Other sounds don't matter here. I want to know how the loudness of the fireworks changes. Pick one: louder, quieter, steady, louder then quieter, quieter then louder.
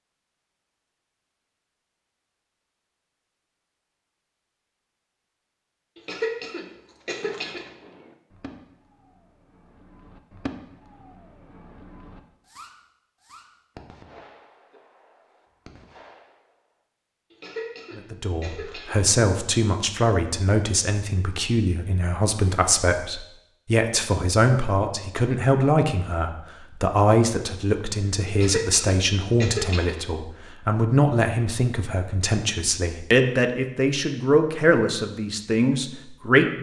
louder then quieter.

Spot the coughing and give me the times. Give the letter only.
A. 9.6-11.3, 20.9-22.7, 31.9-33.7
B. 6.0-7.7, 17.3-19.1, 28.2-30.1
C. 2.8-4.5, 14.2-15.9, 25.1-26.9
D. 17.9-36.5
B.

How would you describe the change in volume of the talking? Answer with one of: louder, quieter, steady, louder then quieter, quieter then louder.
steady.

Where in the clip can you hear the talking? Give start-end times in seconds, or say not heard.
17.9-36.5.